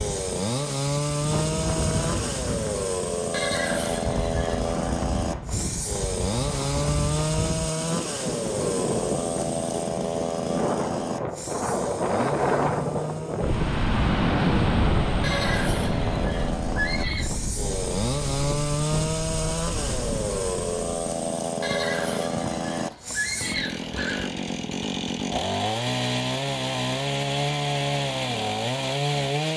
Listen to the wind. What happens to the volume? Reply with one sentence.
The volume of the wind goes up, then down.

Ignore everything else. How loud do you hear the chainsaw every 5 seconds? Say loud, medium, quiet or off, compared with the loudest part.
loud, loud, medium, loud, loud, loud.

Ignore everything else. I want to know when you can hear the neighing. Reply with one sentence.
The neighing can be heard from 3.3 to 4.8 s, from 15.2 to 17.3 s and from 21.6 to 24.4 s.